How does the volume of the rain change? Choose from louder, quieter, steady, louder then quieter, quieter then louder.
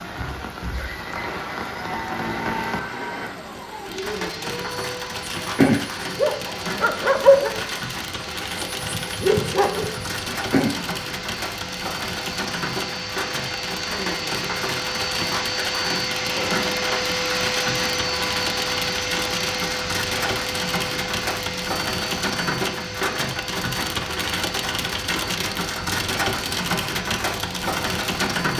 louder.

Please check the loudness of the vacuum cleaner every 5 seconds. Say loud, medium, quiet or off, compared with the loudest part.
medium, medium, medium, loud, medium, medium.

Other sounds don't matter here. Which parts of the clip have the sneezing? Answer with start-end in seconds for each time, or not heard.
not heard.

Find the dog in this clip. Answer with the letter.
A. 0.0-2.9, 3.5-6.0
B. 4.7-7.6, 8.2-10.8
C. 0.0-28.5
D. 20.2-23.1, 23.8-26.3
B.